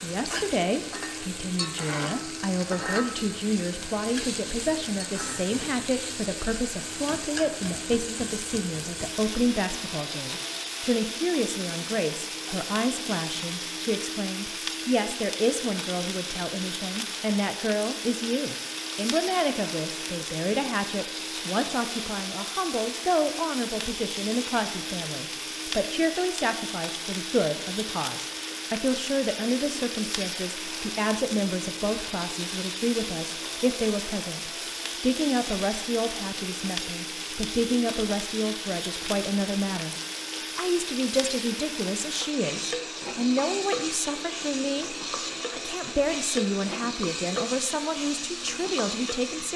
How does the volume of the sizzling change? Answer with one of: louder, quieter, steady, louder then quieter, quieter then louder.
steady.